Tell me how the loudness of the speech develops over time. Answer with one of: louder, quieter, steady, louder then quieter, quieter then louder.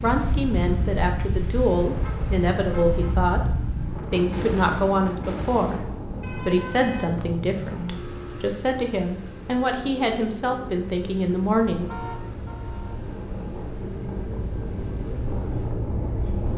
steady.